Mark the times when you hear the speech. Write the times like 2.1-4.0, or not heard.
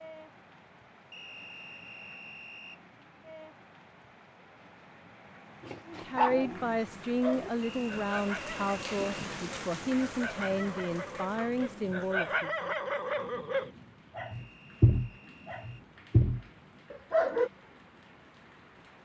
5.8-12.7.